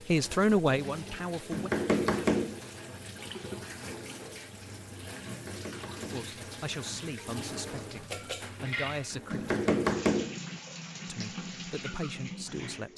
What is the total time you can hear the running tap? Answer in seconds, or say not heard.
13 s.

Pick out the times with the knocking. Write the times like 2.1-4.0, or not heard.
1.5-2.6, 5.2-6.3, 9.3-10.4.